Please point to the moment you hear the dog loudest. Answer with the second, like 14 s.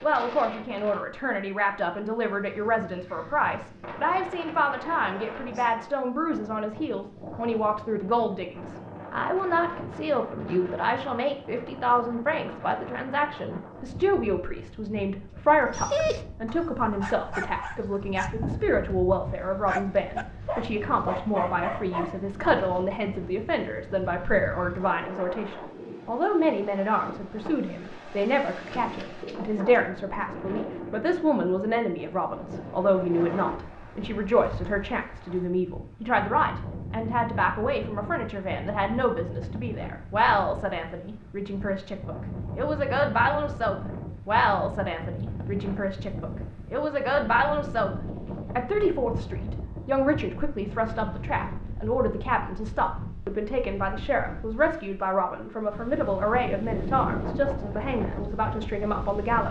16 s.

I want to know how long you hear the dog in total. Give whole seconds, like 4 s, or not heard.
7 s.